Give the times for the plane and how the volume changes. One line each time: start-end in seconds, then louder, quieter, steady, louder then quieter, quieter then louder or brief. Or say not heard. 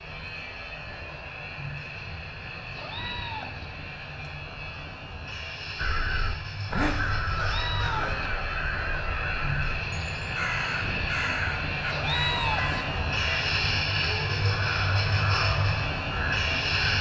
0.0-16.9 louder.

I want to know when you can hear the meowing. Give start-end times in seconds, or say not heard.
2.8-3.7, 7.3-8.3, 11.9-12.8.